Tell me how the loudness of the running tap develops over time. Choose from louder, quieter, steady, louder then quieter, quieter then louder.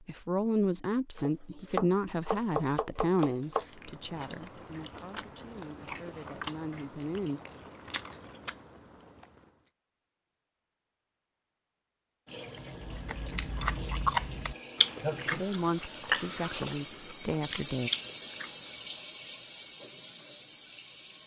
louder then quieter.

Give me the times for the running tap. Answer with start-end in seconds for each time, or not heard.
12.2-21.2.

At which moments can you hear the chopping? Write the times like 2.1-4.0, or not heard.
1.1-3.6.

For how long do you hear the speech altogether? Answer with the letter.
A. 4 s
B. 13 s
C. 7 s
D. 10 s
D.